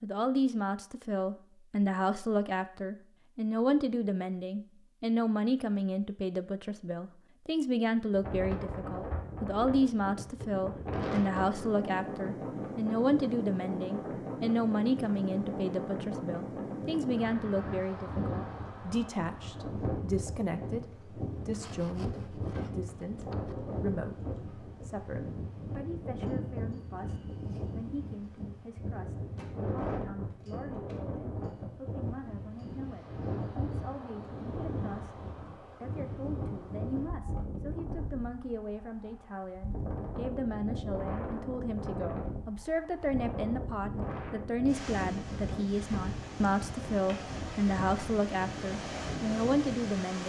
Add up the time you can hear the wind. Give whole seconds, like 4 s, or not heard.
42 s.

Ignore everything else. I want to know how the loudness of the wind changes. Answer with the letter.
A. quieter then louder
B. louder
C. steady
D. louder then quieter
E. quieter
C.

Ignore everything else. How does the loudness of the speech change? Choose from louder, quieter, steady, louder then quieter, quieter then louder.
quieter then louder.